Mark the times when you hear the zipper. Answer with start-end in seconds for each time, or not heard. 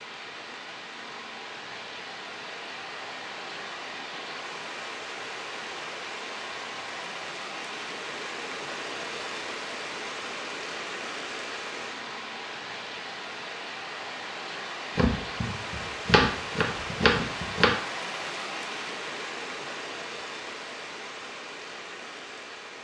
not heard.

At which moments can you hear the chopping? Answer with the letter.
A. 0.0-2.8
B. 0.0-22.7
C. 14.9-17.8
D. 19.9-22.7
C.